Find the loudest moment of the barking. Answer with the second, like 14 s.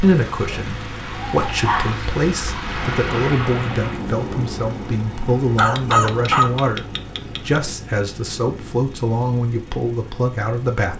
6 s.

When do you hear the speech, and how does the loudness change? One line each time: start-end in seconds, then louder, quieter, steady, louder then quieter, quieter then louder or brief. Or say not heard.
0.0-10.9 steady.